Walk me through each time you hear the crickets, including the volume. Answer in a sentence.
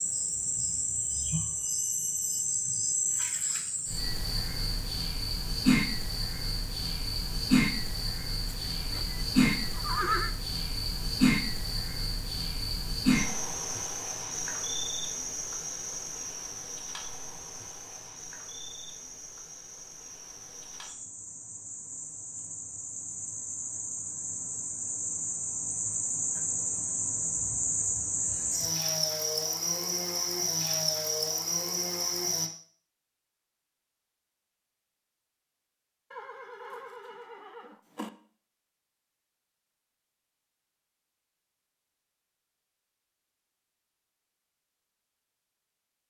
The crickets can be heard from 0.0 to 32.5 s, getting quieter then louder.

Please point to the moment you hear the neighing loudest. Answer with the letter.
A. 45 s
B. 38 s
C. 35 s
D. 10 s
D.